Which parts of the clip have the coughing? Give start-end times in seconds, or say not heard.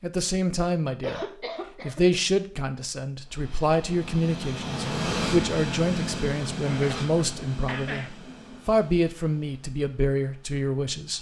1.0-2.2, 6.7-8.1.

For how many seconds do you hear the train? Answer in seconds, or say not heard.
8 s.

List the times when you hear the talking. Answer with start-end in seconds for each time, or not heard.
0.0-1.2, 1.8-11.1.